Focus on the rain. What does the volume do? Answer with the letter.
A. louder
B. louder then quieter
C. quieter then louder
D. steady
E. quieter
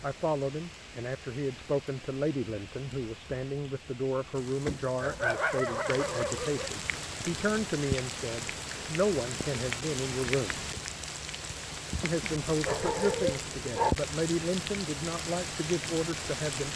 A.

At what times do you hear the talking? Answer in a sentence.
You can hear the talking from 0.0 to 10.6 s and from 12.0 to 16.7 s.